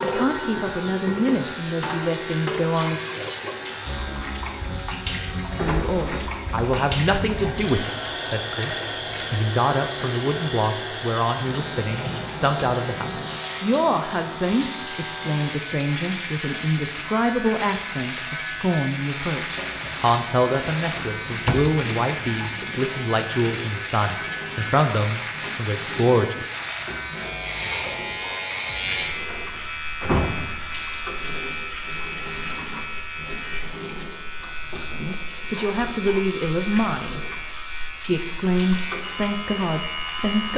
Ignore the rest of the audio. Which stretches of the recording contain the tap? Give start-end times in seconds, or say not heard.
0.0-40.5.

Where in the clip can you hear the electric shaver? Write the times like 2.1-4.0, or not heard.
0.0-40.5.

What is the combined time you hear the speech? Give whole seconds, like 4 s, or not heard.
29 s.